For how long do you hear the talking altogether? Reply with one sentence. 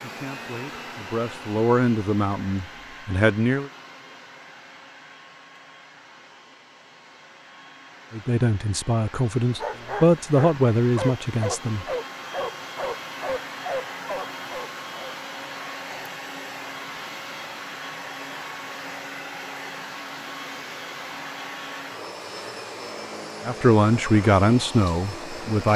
The talking can be heard for 10 seconds in total.